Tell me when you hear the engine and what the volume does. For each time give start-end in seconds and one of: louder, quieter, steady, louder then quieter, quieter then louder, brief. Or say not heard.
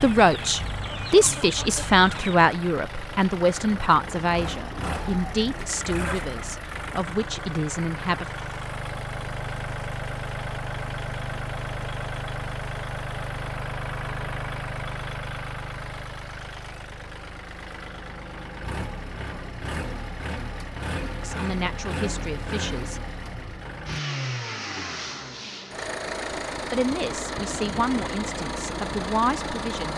0.0-29.9 steady.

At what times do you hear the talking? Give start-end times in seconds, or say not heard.
0.0-8.2, 21.2-23.0, 26.6-29.9.